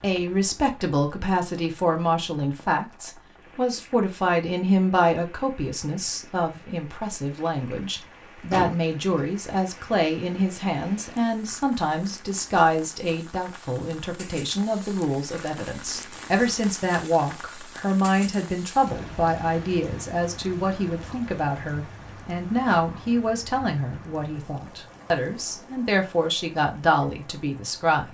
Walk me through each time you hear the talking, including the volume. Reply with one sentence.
You can hear the talking from 0.0 to 28.0 s, at a steady volume.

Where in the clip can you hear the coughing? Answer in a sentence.
You can hear the coughing from 8.5 to 9.2 s.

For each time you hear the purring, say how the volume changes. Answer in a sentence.
You can't hear the purring here.